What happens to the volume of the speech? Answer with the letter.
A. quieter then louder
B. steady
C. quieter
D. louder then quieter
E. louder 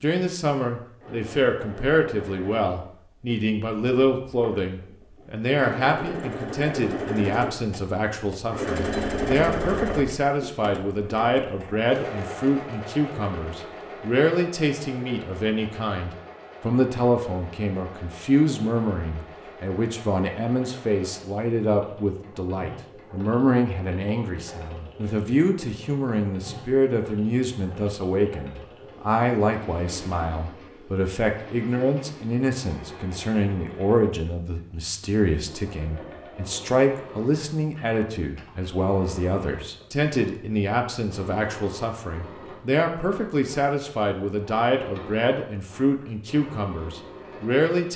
B.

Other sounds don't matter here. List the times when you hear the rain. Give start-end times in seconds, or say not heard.
not heard.